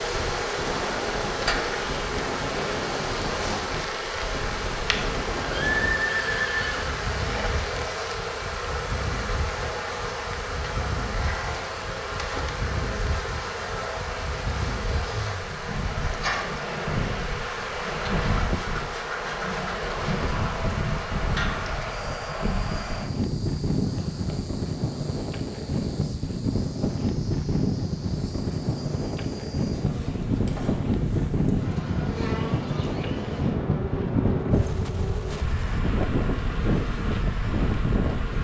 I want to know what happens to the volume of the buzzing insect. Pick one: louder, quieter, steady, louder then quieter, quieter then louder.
quieter then louder.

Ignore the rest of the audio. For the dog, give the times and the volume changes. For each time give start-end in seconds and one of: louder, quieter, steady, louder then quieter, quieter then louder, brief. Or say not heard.
not heard.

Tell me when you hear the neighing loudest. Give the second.
6 s.